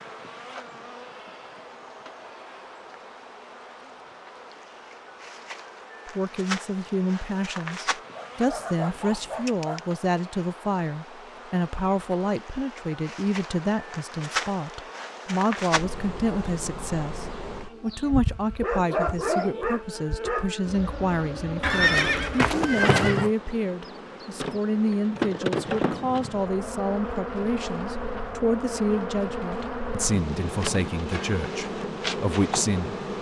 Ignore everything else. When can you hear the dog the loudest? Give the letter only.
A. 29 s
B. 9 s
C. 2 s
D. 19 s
D.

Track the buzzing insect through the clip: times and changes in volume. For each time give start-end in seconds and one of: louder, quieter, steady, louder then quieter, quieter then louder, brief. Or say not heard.
0.0-33.1 louder.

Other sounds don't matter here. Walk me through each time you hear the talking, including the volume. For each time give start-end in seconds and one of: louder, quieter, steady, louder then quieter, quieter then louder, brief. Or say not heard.
6.0-33.0 steady.